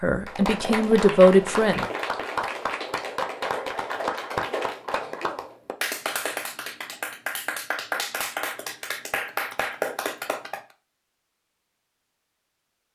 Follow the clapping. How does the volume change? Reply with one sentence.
The loudness of the clapping stays about the same.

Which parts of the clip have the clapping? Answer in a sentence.
You can hear the clapping from 0.2 to 10.6 s.